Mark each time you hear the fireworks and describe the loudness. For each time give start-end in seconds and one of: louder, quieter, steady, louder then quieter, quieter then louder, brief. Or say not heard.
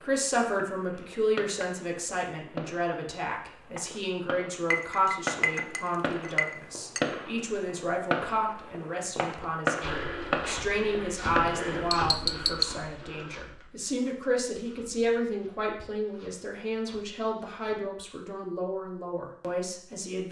0.0-11.7 louder.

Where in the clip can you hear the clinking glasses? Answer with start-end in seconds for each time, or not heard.
4.7-7.0, 11.4-12.7.